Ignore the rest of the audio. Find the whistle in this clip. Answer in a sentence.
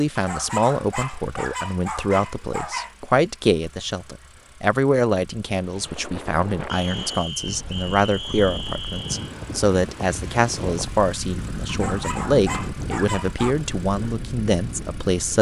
You can hear the whistle from 6.7 to 9.3 s.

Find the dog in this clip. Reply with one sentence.
The dog can be heard from 0.1 to 3.0 s and from 11.7 to 13.6 s.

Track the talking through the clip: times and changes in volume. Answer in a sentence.
You can hear the talking from 0.0 to 15.3 s, at a steady volume.